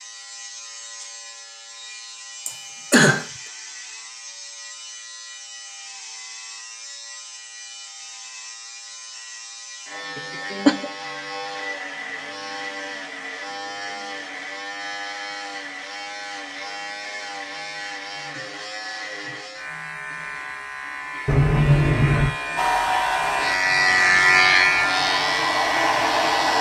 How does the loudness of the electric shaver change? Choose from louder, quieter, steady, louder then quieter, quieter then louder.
louder.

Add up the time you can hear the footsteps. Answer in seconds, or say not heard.
not heard.